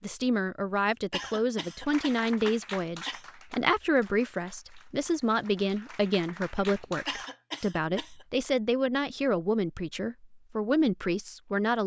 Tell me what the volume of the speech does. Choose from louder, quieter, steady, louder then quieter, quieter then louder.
steady.